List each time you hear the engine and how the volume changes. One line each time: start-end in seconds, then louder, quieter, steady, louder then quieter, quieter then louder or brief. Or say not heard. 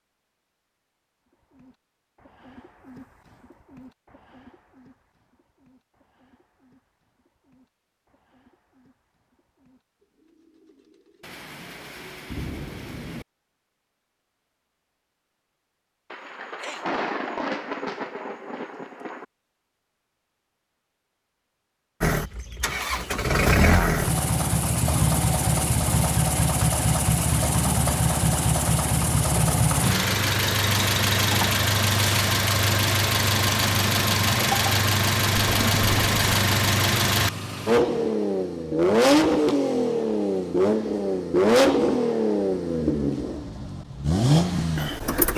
22.0-45.3 steady.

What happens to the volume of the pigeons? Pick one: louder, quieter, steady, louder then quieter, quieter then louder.
quieter.